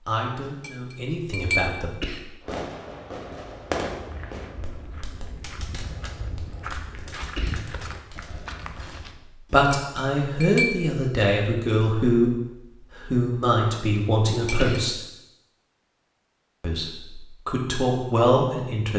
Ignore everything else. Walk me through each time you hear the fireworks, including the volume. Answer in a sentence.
You can hear the fireworks from 2.4 to 9.1 s, getting quieter.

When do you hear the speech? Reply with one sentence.
The speech can be heard from 0.1 to 2.1 s, from 9.5 to 15.0 s and from 16.6 to 18.9 s.